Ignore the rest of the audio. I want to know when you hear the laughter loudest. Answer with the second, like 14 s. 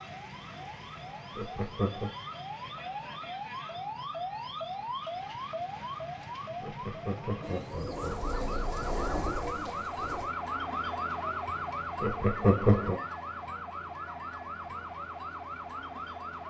13 s.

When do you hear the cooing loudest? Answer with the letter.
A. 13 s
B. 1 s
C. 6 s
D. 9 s
D.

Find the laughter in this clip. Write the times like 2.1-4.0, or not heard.
1.4-2.1, 6.6-8.3, 12.0-13.0.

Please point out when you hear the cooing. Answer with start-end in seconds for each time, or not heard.
7.4-10.3.